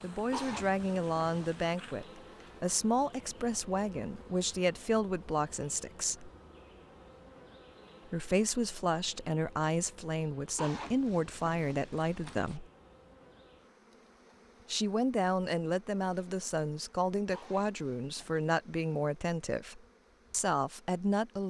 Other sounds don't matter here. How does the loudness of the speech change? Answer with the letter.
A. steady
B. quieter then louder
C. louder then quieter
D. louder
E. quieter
A.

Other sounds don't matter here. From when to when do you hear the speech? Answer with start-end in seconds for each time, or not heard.
0.0-6.3, 8.1-12.7, 14.7-21.4.